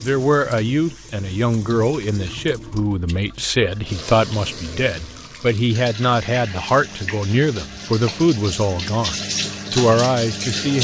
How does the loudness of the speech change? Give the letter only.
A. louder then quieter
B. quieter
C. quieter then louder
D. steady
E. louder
D.